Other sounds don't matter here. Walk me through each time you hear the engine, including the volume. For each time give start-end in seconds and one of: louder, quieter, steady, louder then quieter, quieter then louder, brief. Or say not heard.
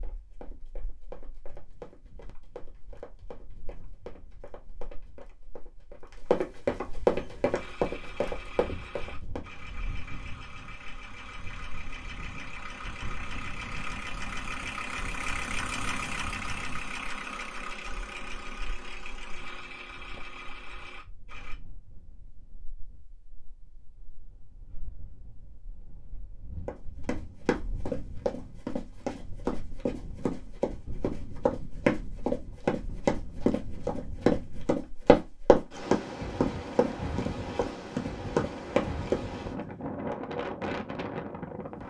7.1-21.6 louder then quieter.